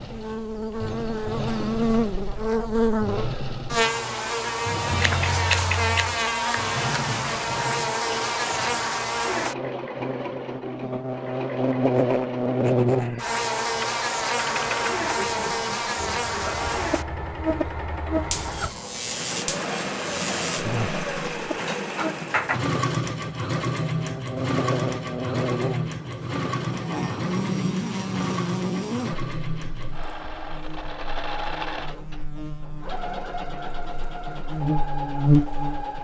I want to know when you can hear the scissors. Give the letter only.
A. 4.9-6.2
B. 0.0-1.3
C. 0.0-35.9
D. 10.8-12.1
A.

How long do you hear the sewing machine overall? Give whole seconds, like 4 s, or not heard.
36 s.